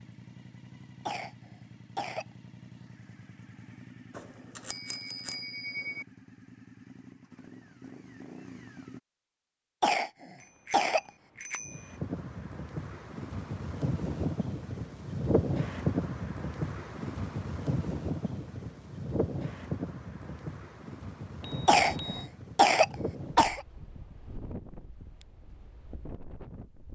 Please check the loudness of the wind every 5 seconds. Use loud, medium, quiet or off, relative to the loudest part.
off, off, loud, loud, medium, quiet.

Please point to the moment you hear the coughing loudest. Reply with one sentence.
The loudest moment of the coughing is at 23 seconds.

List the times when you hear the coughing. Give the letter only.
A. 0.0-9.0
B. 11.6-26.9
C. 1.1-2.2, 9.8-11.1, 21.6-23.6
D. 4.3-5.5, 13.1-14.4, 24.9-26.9
C.